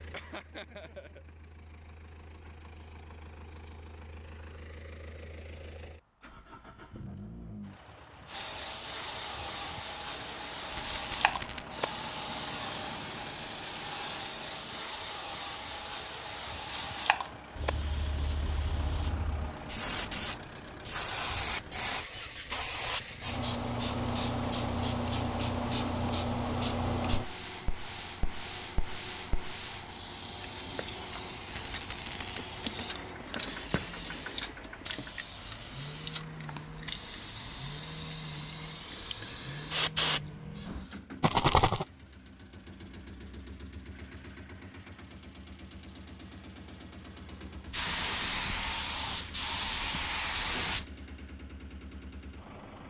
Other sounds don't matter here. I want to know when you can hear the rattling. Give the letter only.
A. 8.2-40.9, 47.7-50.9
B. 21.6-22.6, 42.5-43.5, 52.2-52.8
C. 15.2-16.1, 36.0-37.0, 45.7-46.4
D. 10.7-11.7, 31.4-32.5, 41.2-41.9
D.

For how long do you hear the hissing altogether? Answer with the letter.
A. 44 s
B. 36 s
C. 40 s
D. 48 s
B.